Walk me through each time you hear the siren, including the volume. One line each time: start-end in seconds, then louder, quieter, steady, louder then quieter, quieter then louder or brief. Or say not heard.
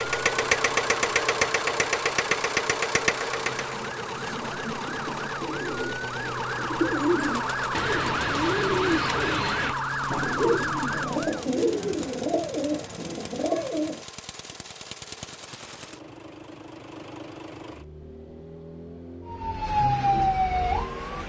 0.0-11.4 louder
19.2-21.2 brief.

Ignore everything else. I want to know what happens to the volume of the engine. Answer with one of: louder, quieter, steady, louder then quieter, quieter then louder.
quieter.